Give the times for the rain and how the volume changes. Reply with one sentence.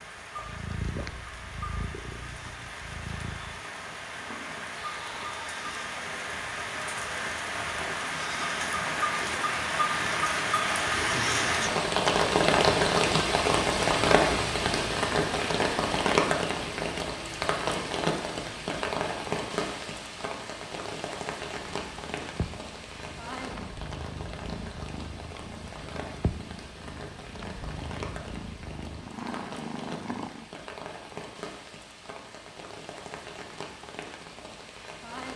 You can hear the rain from 0.0 to 35.3 s, getting louder then quieter.